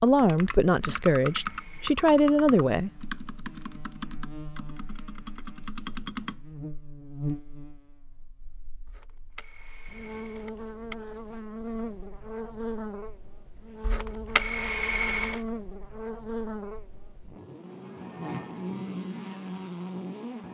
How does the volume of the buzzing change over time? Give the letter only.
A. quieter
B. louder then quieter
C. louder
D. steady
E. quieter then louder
C.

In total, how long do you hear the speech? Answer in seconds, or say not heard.
3 s.